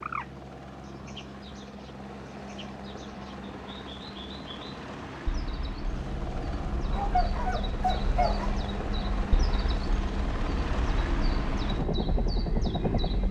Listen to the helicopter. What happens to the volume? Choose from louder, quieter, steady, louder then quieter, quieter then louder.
louder.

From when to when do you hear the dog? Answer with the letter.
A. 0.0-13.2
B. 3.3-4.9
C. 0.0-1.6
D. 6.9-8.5
D.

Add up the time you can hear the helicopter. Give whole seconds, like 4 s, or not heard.
13 s.